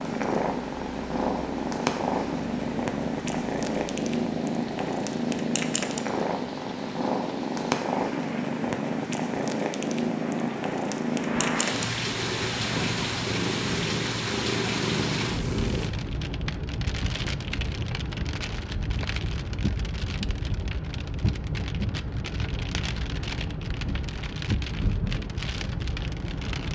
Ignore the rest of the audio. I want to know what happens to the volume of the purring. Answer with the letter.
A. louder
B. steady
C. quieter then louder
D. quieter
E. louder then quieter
B.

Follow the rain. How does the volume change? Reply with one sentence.
The volume of the rain goes up.